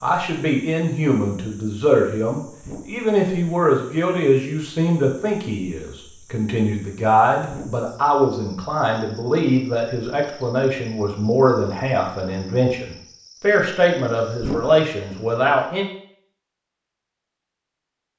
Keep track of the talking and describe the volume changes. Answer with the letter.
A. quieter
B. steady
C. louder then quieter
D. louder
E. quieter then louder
B.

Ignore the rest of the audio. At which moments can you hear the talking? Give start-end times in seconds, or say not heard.
0.0-15.8.